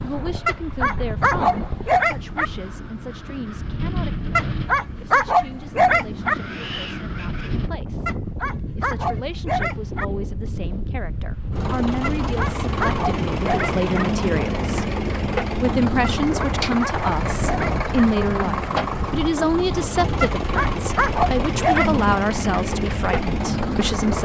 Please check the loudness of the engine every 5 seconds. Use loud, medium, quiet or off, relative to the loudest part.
off, off, loud, loud, loud.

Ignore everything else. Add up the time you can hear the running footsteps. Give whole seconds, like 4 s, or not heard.
not heard.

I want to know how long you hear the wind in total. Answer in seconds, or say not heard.
24 s.